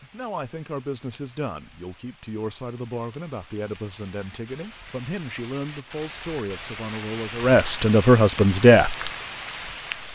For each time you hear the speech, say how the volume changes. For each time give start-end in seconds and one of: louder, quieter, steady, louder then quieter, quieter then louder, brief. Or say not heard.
0.0-9.1 louder.